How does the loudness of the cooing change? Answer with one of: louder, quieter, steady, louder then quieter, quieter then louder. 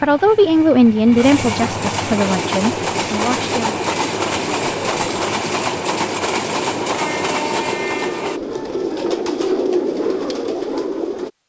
louder.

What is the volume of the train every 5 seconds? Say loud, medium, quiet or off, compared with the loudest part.
loud, loud, off.